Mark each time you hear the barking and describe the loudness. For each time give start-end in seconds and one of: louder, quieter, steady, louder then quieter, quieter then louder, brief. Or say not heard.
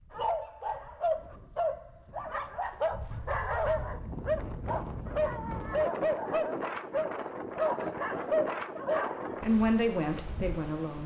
0.1-9.4 steady.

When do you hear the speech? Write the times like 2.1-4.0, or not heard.
9.4-11.0.